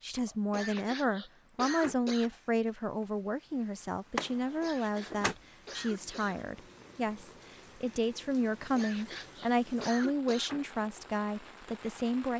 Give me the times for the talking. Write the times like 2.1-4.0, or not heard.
0.0-12.3.